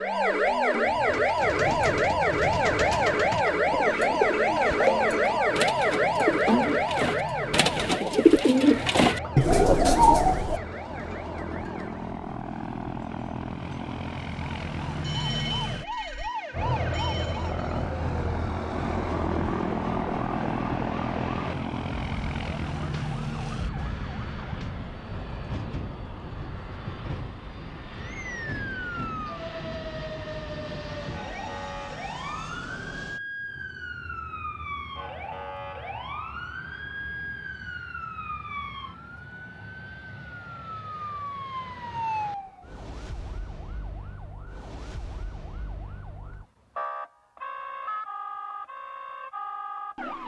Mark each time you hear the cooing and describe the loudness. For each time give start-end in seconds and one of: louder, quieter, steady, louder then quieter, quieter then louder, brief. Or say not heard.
1.1-10.6 louder.